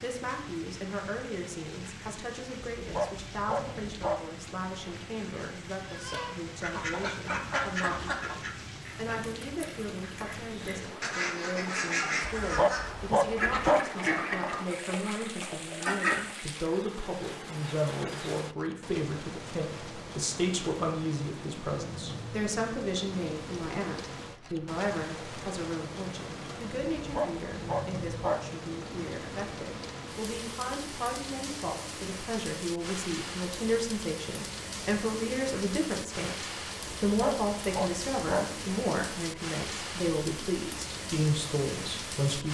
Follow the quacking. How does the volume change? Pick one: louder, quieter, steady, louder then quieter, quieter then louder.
quieter then louder.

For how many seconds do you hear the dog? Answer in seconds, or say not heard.
6 s.